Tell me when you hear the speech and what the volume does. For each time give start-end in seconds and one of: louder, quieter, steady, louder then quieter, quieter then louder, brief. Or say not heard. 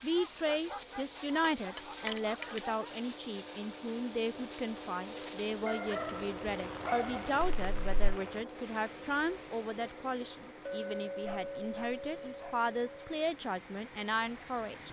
0.0-14.8 steady.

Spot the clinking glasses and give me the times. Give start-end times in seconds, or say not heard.
1.4-2.6, 7.4-8.1, 10.7-13.1.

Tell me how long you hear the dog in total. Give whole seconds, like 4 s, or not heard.
6 s.